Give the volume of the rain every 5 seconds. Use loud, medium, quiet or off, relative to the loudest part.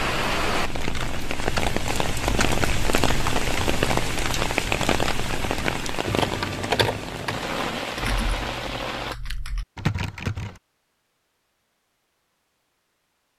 loud, loud, off.